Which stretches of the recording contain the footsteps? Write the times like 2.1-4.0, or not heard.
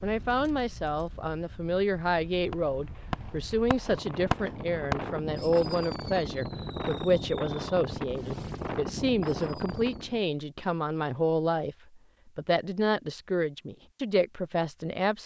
not heard.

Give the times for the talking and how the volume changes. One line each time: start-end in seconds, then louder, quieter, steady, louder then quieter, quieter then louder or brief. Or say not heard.
0.0-15.2 steady.